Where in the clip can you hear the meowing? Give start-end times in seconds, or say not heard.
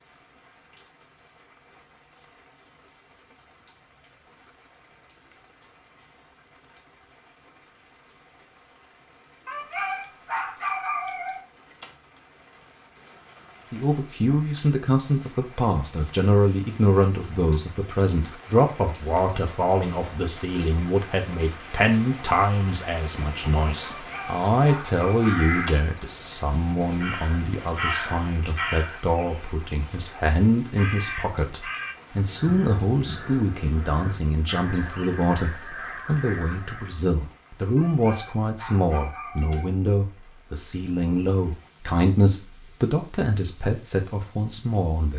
not heard.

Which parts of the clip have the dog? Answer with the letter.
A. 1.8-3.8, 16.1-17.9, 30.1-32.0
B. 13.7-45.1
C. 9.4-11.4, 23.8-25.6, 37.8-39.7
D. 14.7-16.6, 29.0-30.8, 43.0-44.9
C.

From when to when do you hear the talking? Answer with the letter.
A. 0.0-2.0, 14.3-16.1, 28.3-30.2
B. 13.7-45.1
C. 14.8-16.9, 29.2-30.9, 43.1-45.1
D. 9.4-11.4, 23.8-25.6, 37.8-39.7
B.